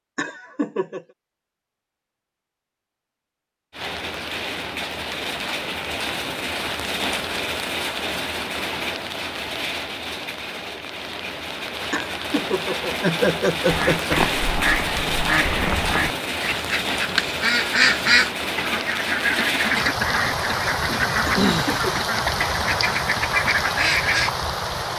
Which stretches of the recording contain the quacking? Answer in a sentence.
You can hear the quacking from 13.7 to 24.3 s.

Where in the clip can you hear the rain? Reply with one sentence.
You can hear the rain from 3.7 to 24.9 s.